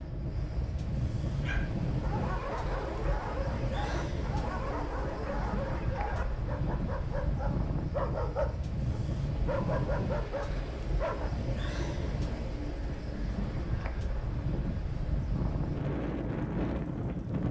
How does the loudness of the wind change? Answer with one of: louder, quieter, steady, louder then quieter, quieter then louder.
steady.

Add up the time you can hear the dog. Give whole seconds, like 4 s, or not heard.
10 s.